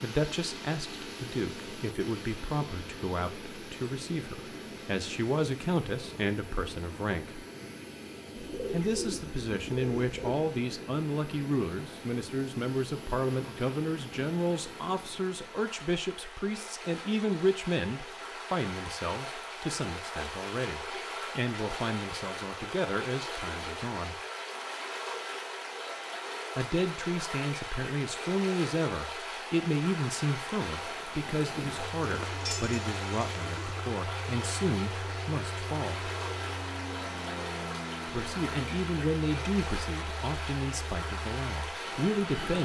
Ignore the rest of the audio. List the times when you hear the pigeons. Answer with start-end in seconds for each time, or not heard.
8.3-10.3, 32.0-33.9.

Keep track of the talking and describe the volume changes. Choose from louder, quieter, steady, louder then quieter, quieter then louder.
steady.